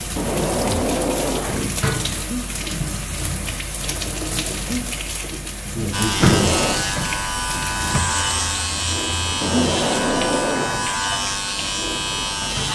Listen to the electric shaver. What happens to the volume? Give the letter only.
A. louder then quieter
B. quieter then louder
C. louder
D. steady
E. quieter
D.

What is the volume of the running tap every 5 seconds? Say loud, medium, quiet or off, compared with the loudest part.
loud, loud, medium.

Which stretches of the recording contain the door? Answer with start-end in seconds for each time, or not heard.
0.1-1.9, 6.2-6.8, 9.4-10.9.